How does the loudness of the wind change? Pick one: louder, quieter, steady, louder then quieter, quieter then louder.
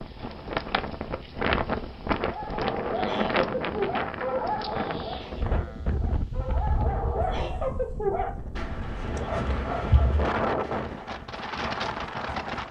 quieter then louder.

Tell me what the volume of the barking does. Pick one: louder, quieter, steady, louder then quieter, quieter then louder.
steady.